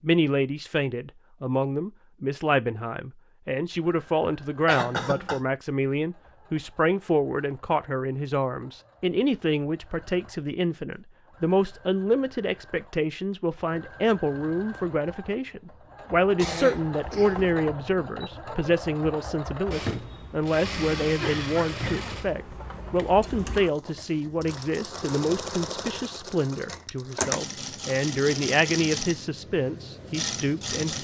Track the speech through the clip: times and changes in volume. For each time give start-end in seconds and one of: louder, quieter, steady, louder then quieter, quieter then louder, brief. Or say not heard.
0.0-30.9 steady.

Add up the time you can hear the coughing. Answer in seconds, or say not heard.
3 s.